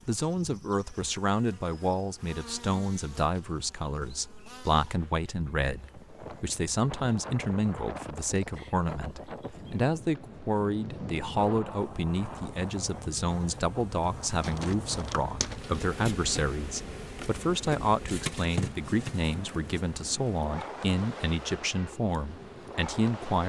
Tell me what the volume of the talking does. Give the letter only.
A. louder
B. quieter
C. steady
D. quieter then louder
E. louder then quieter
C.